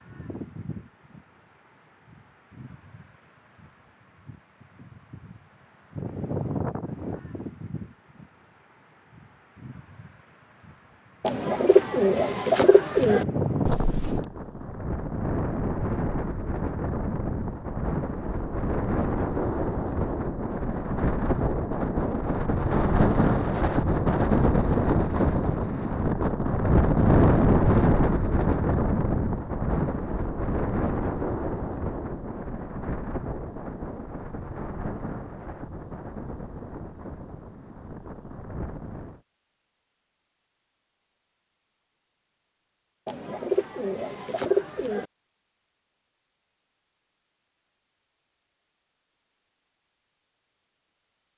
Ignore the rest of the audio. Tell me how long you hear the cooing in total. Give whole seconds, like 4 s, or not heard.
4 s.